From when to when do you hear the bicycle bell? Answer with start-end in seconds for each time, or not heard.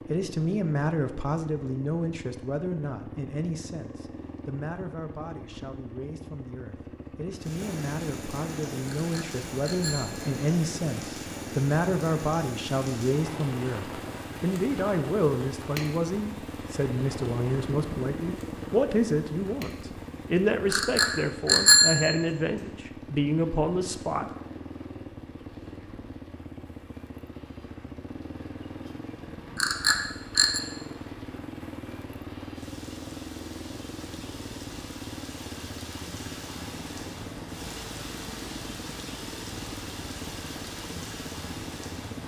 8.8-10.3, 20.7-22.1, 29.6-30.6.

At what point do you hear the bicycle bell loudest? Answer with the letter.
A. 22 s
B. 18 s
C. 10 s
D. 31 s
A.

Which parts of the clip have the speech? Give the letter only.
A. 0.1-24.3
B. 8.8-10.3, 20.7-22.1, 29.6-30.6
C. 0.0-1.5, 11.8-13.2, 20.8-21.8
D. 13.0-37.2
A.